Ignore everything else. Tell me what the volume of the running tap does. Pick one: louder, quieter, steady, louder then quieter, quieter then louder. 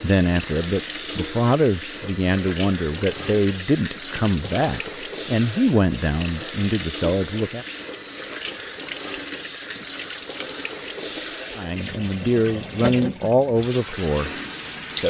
steady.